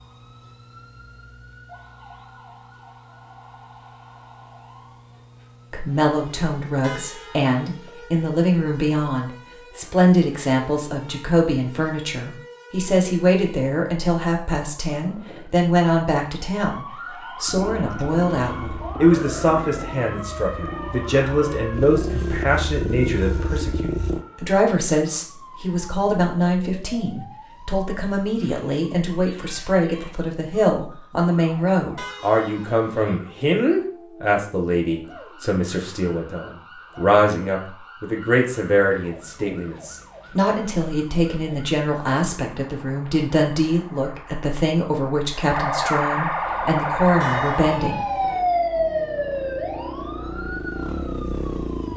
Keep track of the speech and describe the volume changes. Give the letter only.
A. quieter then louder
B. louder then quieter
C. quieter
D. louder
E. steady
E.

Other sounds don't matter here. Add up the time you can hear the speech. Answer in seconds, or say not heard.
42 s.